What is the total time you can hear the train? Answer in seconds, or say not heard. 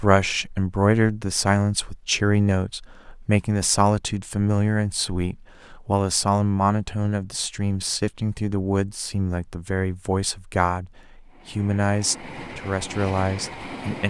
3 s.